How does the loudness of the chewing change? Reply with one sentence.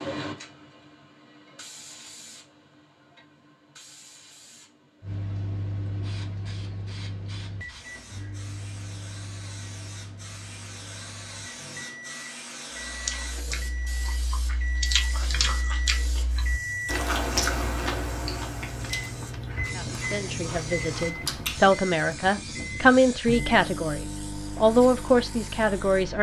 The volume of the chewing goes up, then down.